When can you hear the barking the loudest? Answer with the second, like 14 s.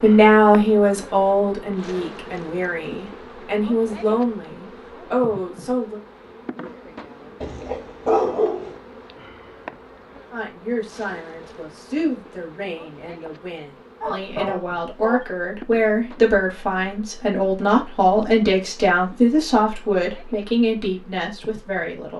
8 s.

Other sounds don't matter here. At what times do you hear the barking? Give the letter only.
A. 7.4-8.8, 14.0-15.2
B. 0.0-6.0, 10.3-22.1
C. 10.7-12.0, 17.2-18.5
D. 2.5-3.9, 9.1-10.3
A.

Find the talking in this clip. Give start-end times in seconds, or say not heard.
0.0-6.0, 10.3-22.1.